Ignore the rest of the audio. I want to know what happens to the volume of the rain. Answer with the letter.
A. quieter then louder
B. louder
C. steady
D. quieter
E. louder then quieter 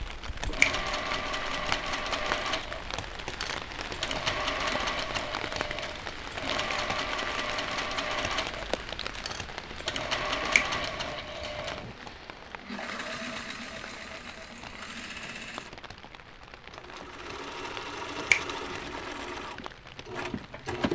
D.